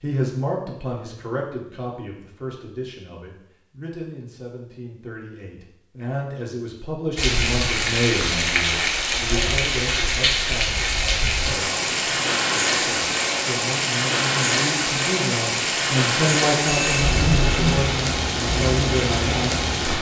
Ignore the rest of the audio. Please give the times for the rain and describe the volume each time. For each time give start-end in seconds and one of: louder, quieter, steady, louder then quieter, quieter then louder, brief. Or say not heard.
7.2-19.9 steady.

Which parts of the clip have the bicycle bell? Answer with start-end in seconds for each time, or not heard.
16.6-17.8.